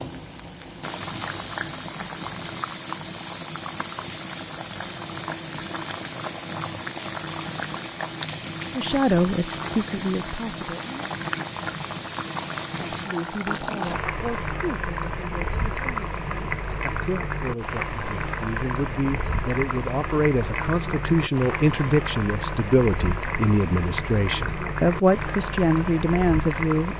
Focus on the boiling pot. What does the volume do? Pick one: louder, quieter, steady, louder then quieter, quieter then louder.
steady.